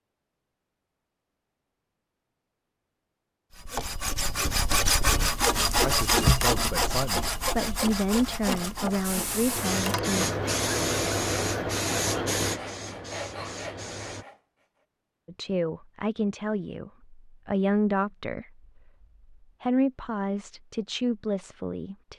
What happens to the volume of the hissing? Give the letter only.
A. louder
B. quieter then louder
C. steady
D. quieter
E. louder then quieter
D.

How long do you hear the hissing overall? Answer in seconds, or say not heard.
5 s.